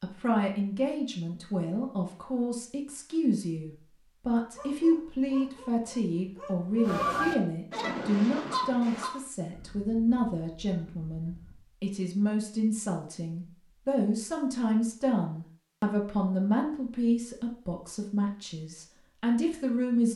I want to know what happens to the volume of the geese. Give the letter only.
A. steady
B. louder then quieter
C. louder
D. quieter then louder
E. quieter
E.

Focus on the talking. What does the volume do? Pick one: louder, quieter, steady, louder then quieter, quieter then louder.
steady.